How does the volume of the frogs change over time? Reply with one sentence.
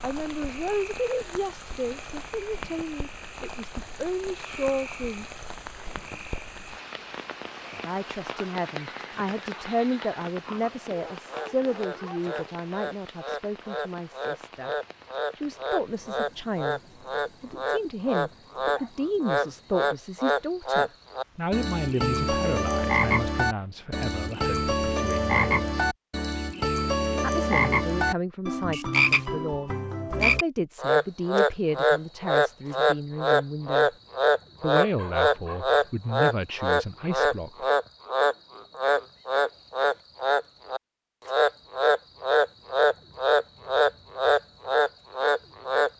The loudness of the frogs goes up.